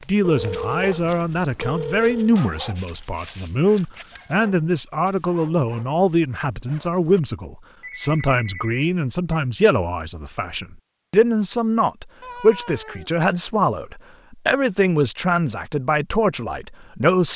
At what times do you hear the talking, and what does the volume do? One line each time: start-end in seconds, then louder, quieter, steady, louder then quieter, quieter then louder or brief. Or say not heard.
0.1-17.3 steady.